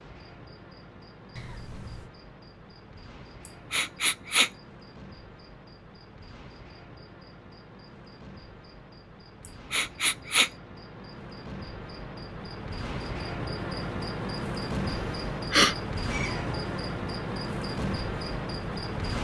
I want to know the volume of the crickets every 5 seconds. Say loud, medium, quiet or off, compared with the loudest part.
quiet, quiet, loud, loud.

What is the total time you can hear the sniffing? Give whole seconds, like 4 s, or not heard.
3 s.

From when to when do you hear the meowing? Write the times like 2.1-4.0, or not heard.
1.4-2.1, 16.1-16.9.